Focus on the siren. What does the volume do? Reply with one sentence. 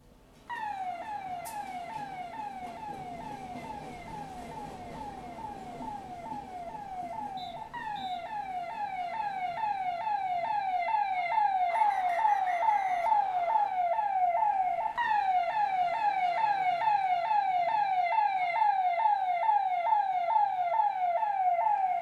The loudness of the siren goes up.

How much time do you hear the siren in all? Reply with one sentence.
You can hear the siren for 22 seconds altogether.